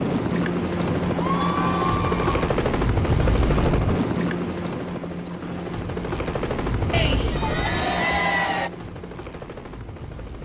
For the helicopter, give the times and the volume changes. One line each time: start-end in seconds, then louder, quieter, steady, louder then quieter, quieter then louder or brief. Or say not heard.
0.0-10.4 quieter.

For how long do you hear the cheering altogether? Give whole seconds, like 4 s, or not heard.
3 s.